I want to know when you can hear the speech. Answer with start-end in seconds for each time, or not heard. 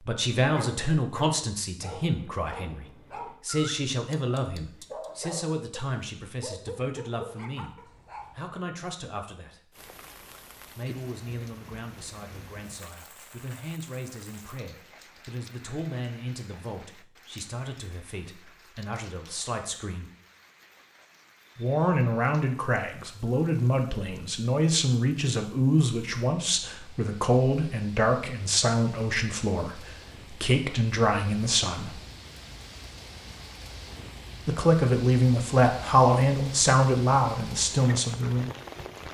0.0-9.8, 10.7-20.1, 21.6-32.0, 34.5-38.5.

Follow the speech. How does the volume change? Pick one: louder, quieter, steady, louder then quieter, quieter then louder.
quieter then louder.